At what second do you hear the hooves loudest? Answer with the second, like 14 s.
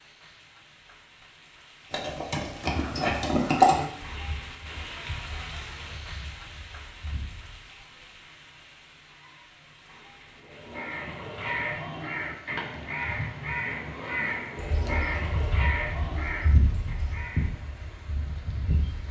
4 s.